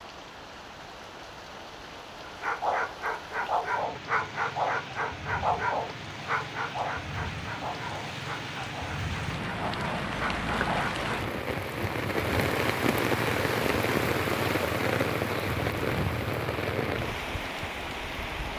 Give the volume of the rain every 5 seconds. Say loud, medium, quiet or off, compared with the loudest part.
quiet, medium, loud, loud.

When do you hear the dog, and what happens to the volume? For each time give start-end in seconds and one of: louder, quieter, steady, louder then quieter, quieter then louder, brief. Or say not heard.
2.2-11.1 quieter.